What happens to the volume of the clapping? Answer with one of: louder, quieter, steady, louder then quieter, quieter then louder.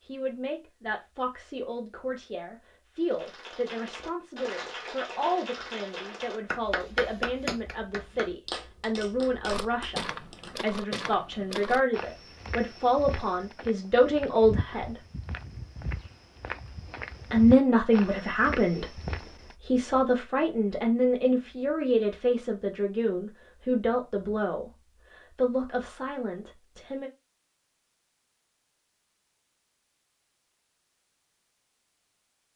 louder then quieter.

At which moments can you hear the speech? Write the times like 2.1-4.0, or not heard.
0.1-15.0, 17.3-27.1.